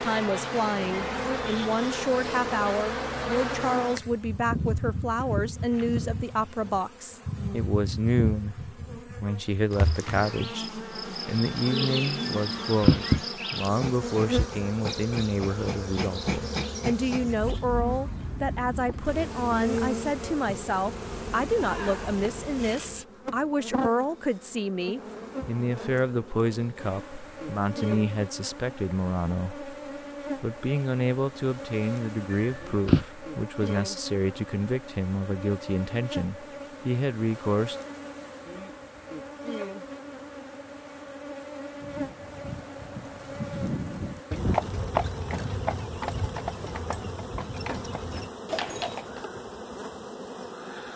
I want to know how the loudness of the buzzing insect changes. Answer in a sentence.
The loudness of the buzzing insect goes down.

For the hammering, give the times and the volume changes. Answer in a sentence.
You can't hear the hammering here.